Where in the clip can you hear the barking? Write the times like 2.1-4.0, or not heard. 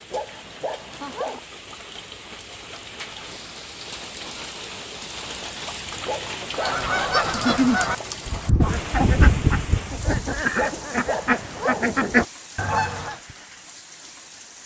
0.1-1.4, 6.0-7.3, 10.6-11.8.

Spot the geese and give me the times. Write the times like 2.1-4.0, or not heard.
6.5-13.2.